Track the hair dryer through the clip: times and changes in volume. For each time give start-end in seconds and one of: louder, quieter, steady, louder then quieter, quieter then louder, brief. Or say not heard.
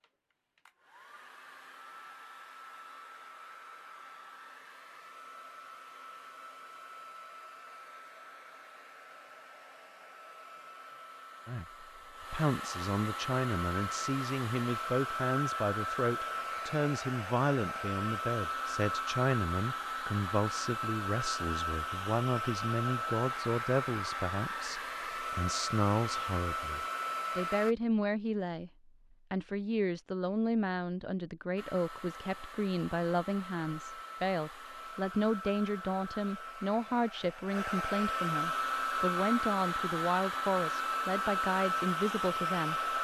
0.0-27.8 louder
31.6-42.9 louder.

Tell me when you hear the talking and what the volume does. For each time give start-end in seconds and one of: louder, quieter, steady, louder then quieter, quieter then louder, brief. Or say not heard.
11.4-28.7 steady
29.3-42.9 steady.